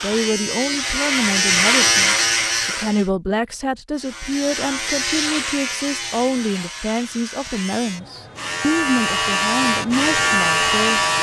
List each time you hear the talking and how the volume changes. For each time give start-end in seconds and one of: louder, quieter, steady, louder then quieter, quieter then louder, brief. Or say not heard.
0.0-11.1 steady.